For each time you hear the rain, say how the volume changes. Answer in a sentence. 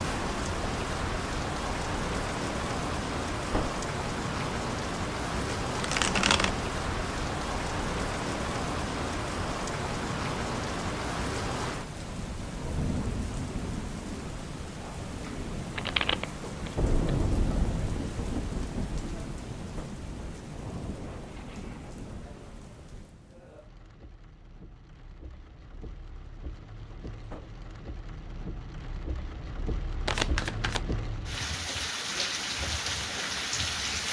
You can hear the rain from 0.0 to 34.0 s, getting quieter then louder.